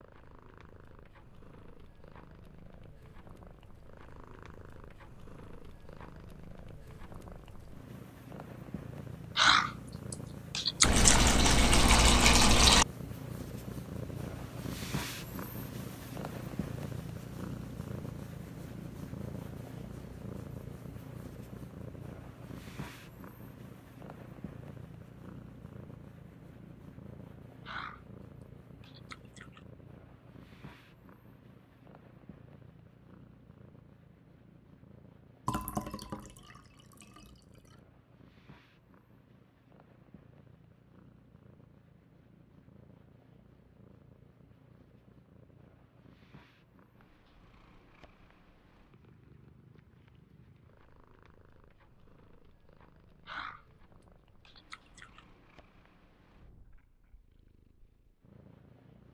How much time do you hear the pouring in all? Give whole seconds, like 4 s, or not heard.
4 s.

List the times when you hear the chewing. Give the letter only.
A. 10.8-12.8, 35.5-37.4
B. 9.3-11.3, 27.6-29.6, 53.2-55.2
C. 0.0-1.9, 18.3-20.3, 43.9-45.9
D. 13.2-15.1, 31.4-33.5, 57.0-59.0
B.